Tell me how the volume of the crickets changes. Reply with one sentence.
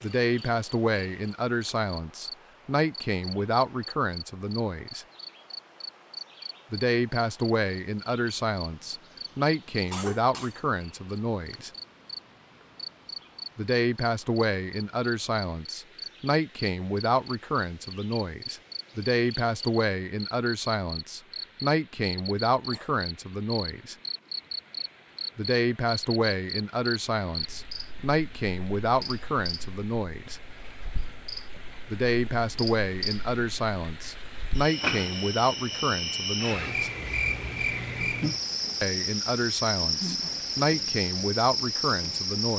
The volume of the crickets goes up.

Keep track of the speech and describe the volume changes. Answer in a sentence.
The loudness of the speech stays about the same.